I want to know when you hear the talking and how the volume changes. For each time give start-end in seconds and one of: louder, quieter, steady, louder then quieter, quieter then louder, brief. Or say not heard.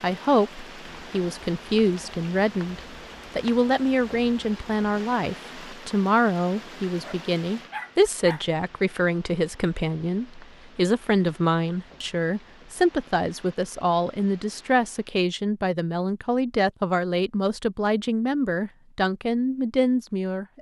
0.0-20.5 steady.